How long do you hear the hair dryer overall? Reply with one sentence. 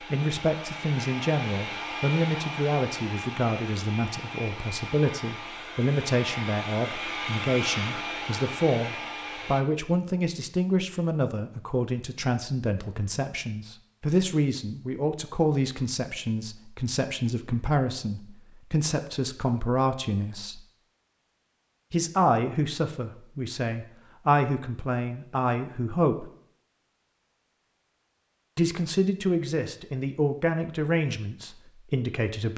The hair dryer can be heard for 10 seconds in total.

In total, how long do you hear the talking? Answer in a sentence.
The talking can be heard for 29 seconds in total.